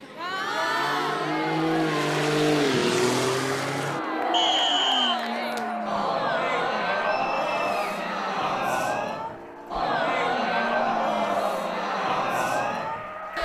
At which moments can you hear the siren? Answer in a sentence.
You can't hear the siren here.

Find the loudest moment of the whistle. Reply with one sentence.
The volume of the whistle peaks at 5 seconds.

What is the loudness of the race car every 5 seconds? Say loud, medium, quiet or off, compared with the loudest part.
loud, medium, medium.